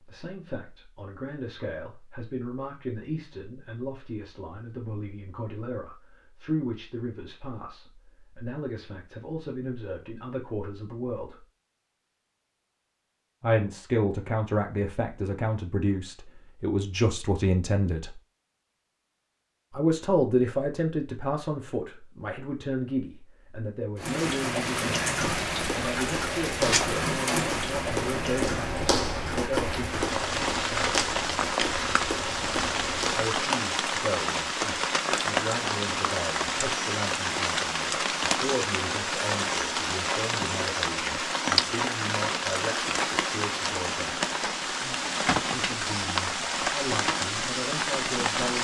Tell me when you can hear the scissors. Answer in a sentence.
The scissors can't be heard in this clip.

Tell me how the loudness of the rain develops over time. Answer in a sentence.
The loudness of the rain stays about the same.